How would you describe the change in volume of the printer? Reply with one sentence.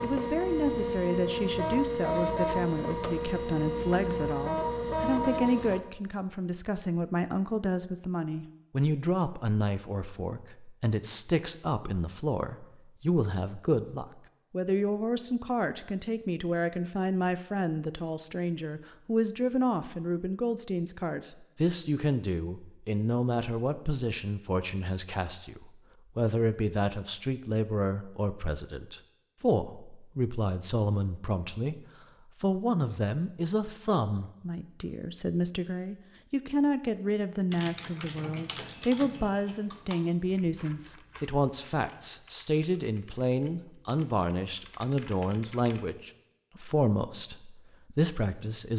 The volume of the printer stays about the same.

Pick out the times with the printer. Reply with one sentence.
You can hear the printer from 0.0 to 5.8 s.